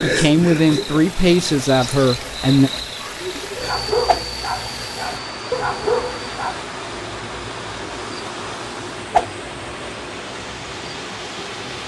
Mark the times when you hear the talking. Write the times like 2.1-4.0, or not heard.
0.0-2.7.